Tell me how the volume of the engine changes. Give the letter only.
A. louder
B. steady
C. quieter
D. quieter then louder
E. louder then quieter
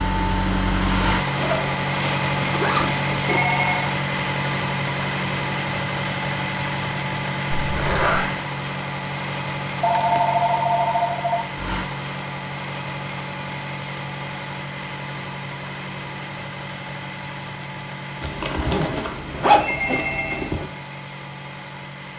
C.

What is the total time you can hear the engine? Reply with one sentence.
The engine can be heard for 22 seconds in total.